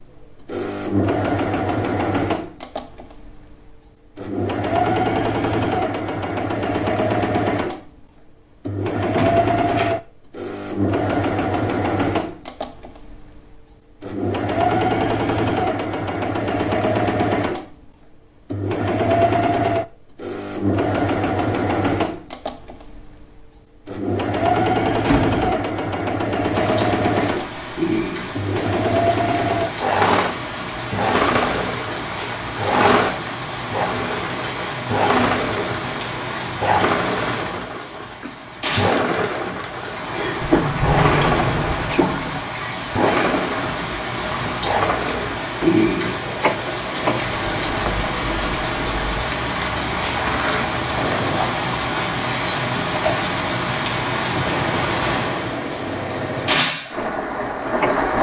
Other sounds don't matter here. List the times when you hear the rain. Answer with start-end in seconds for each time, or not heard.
26.5-58.1.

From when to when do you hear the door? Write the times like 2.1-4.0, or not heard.
9.2-9.9, 25.0-25.4, 40.4-42.4.